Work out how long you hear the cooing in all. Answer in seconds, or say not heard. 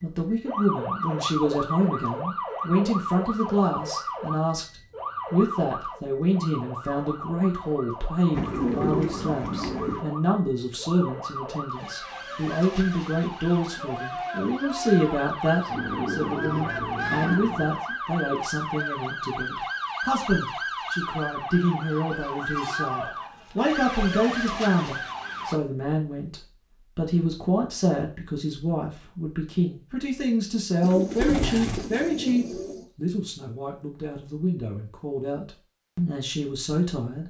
6 s.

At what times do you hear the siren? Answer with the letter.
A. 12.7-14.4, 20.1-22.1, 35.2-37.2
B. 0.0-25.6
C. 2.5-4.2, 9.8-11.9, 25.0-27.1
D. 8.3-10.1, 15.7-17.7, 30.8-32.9
B.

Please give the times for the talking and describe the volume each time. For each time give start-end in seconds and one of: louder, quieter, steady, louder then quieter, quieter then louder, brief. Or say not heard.
0.0-37.2 steady.